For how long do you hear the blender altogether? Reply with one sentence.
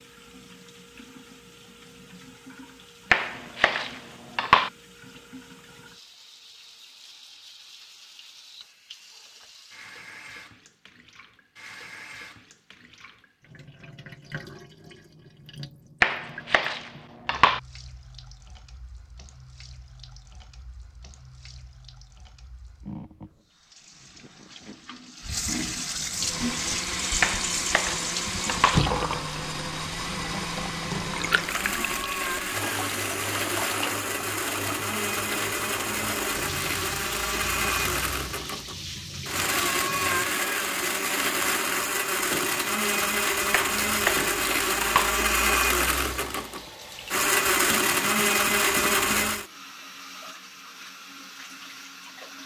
The blender can be heard for 23 seconds in total.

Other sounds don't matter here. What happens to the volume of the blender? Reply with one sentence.
The loudness of the blender goes up.